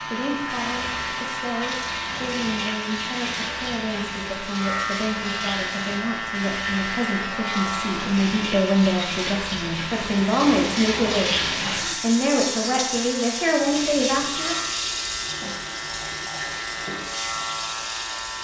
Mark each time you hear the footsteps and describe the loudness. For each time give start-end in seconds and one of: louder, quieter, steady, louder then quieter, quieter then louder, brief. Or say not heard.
not heard.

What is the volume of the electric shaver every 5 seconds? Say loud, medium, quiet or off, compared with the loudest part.
loud, loud, medium, loud.